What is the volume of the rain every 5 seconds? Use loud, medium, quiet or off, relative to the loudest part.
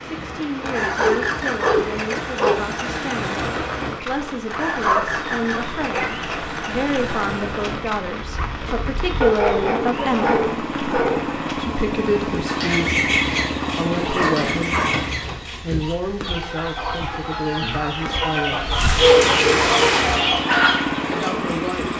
medium, medium, medium, loud, loud.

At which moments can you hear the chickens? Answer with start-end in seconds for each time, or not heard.
12.3-21.1.